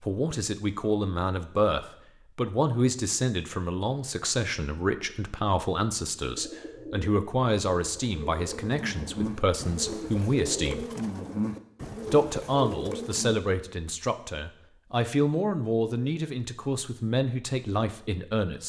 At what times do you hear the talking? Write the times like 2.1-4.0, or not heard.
0.0-10.8, 12.1-18.6.